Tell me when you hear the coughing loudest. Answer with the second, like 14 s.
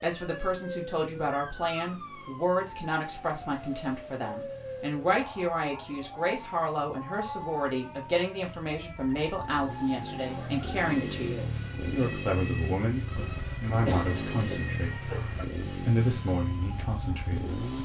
14 s.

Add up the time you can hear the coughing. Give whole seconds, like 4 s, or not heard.
2 s.